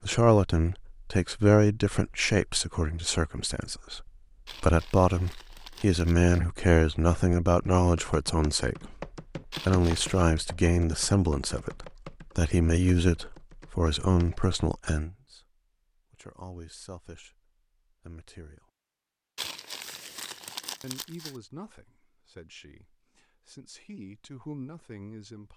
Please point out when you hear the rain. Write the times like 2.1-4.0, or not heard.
not heard.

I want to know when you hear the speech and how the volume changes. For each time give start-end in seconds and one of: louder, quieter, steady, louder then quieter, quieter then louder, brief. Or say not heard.
0.0-15.4 steady
16.1-18.6 brief
20.8-25.5 quieter then louder.